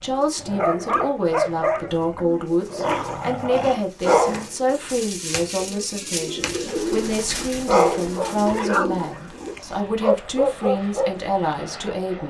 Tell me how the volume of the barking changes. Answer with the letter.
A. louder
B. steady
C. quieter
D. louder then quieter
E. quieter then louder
E.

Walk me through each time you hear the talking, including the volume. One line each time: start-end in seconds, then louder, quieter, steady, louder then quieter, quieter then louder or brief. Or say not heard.
0.0-12.2 steady.